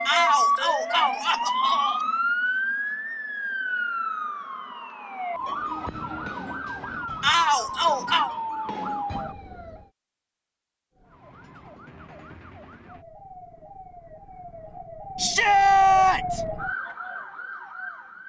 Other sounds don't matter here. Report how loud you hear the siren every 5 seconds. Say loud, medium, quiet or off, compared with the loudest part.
loud, medium, quiet, medium.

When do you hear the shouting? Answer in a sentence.
The shouting can be heard from 0.1 to 2.0 s, from 7.2 to 8.3 s and from 15.2 to 16.4 s.